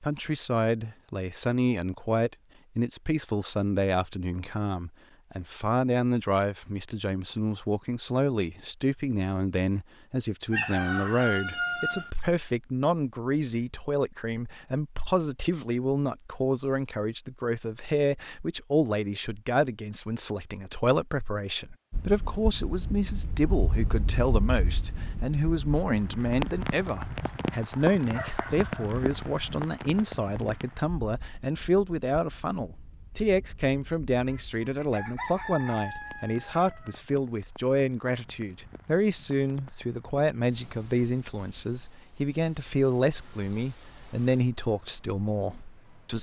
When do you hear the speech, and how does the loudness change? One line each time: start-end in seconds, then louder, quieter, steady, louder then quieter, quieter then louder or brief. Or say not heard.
0.0-46.1 steady.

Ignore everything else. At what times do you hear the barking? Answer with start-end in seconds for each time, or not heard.
not heard.